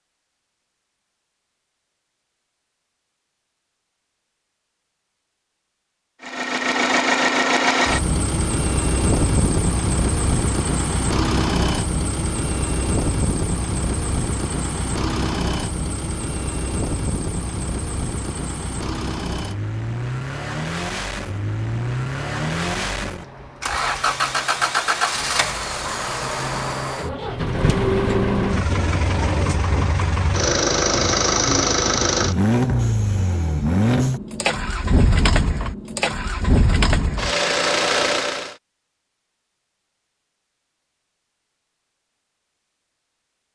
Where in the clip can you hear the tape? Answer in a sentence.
The tape can be heard from 28.6 to 29.6 s.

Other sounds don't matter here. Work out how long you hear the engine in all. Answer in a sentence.
The engine can be heard for 32 seconds in total.